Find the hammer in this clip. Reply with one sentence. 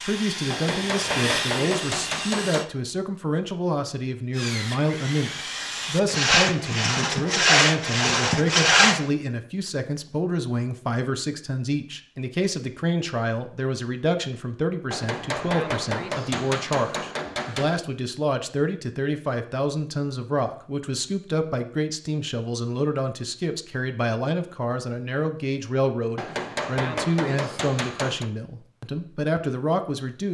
The hammer can be heard from 0.5 to 2.6 s, from 14.9 to 17.8 s and from 26.1 to 28.3 s.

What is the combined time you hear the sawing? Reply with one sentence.
You can hear the sawing for 7 seconds altogether.